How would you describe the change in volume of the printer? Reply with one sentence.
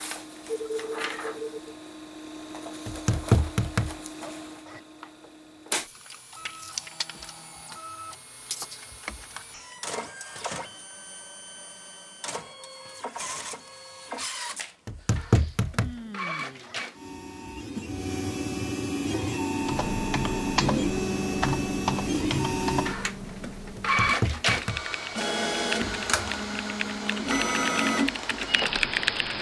The loudness of the printer goes up.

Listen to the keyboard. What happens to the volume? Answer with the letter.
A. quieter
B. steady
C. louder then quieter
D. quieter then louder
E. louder
D.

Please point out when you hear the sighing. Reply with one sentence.
You can hear the sighing from 0.5 to 1.8 s and from 14.9 to 16.8 s.